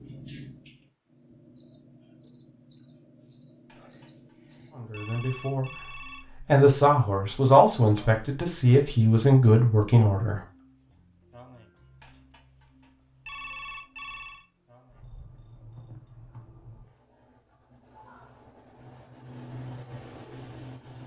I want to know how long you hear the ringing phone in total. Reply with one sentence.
The ringing phone can be heard for 5 seconds in total.